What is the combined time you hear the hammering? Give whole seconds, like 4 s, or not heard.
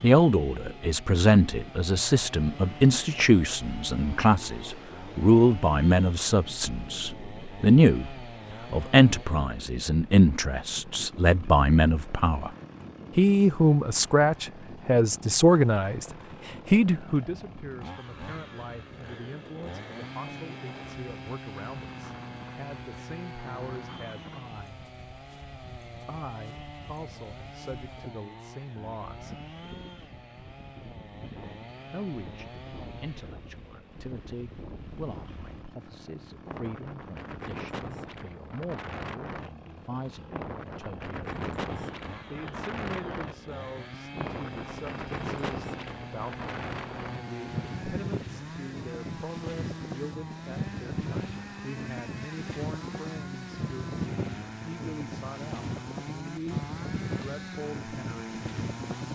not heard.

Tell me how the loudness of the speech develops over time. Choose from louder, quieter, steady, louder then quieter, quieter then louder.
quieter.